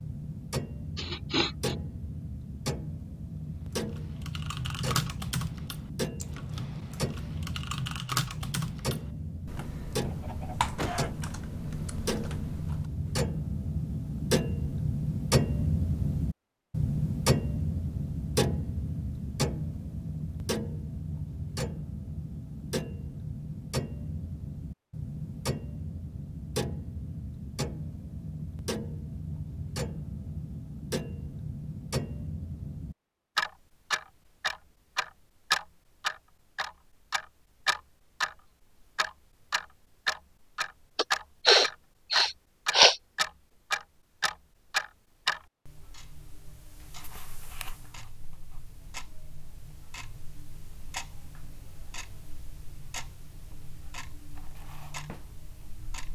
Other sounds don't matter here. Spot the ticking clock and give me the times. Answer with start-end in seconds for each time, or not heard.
0.0-56.0.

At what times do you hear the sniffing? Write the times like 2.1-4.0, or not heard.
0.9-1.8, 41.0-43.0.